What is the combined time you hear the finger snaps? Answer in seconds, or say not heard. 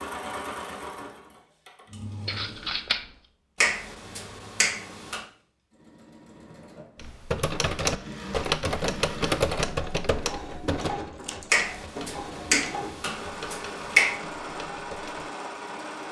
4 s.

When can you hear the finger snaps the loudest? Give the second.
14 s.